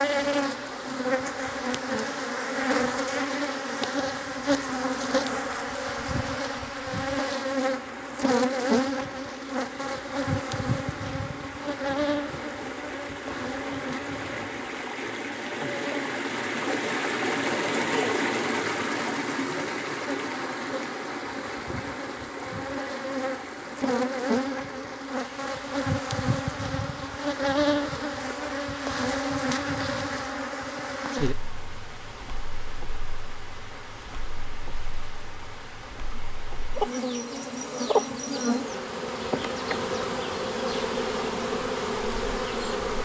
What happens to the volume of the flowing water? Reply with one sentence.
The volume of the flowing water goes up, then down.